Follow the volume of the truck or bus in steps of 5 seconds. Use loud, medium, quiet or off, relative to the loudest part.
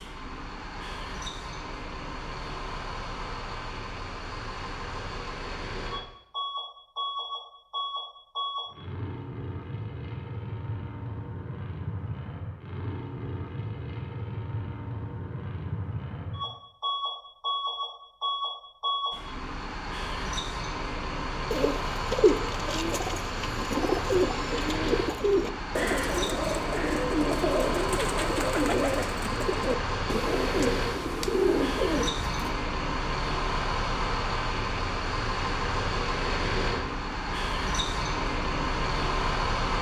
medium, medium, medium, loud, loud, loud, loud, loud.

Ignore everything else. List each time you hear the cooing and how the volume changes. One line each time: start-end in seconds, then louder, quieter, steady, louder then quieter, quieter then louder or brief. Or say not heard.
21.5-32.5 steady.